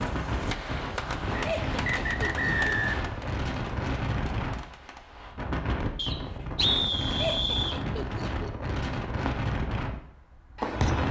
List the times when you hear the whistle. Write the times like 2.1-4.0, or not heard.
1.4-3.0, 6.0-7.8.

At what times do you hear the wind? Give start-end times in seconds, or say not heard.
0.0-11.0.